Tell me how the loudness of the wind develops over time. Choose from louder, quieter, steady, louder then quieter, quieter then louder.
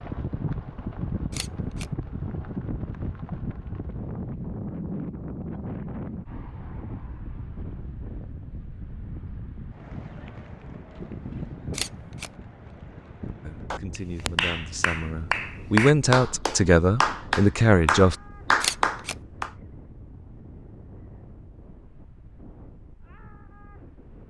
quieter.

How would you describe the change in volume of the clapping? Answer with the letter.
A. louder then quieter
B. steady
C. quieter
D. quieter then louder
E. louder
E.